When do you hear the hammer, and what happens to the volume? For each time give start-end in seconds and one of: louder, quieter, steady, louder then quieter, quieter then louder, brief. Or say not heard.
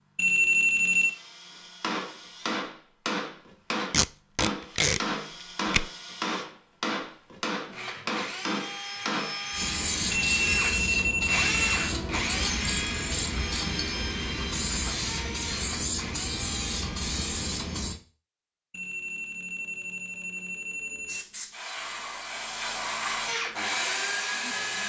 1.8-9.3 steady.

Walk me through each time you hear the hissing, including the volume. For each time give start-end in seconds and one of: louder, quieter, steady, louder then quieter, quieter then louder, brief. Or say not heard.
9.5-18.0 steady
21.1-23.4 brief.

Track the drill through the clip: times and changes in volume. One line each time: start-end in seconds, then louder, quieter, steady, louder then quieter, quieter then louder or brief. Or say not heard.
0.0-17.9 louder then quieter
23.2-24.8 brief.